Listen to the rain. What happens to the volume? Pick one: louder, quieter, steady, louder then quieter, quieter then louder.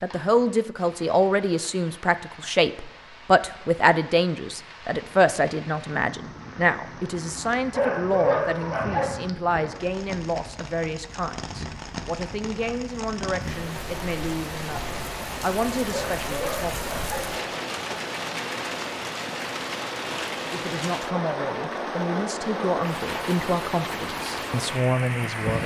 louder.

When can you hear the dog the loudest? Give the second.
8 s.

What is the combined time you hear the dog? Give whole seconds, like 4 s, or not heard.
3 s.